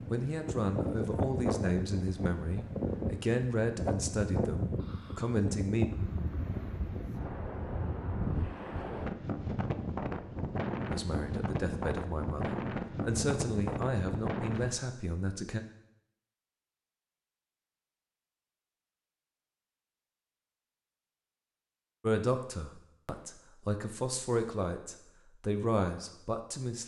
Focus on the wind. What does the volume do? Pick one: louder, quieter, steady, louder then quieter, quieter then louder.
steady.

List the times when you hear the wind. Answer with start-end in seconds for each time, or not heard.
0.0-14.8.